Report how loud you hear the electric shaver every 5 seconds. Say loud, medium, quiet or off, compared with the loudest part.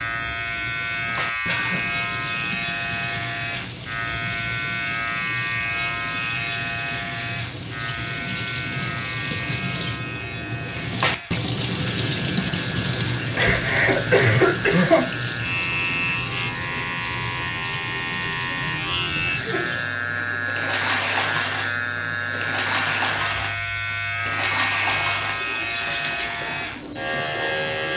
loud, loud, medium, loud, loud, loud.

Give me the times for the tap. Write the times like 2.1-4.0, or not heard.
0.0-27.9.